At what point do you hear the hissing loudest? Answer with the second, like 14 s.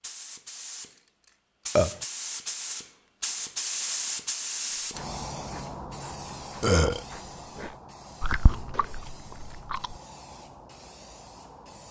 4 s.